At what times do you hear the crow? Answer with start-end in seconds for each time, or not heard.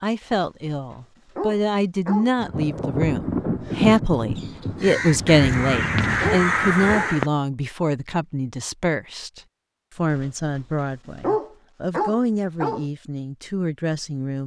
3.6-7.3.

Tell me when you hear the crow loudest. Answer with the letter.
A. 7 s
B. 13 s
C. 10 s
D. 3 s
A.